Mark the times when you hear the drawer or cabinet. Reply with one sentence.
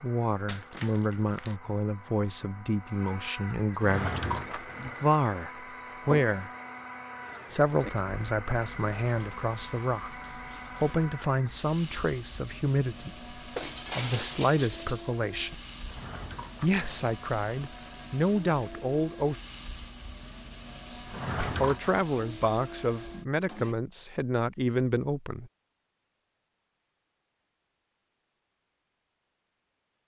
You can hear the drawer or cabinet from 3.7 to 4.7 s, from 15.8 to 16.8 s and from 21.1 to 21.9 s.